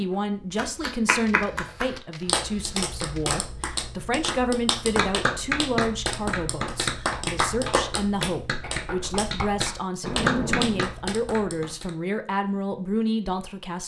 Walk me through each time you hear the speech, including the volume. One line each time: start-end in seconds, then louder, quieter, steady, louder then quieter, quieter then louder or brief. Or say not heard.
0.0-13.8 steady.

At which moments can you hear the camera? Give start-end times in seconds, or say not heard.
1.2-3.2, 10.0-10.8.